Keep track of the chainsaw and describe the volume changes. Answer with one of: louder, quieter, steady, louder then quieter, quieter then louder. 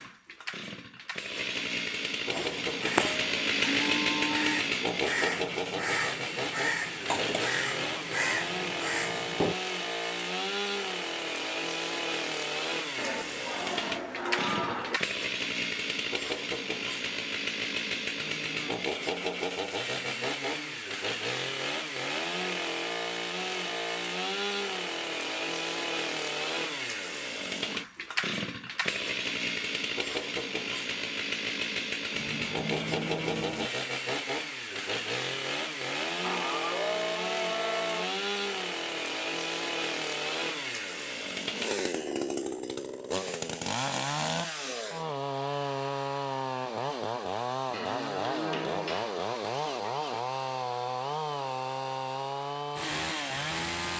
steady.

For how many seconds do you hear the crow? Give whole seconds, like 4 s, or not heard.
7 s.